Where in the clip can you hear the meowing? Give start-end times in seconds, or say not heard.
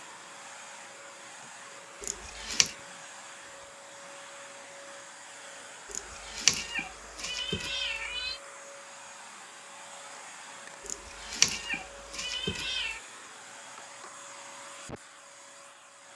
2.0-2.8, 5.9-8.4, 10.8-13.0.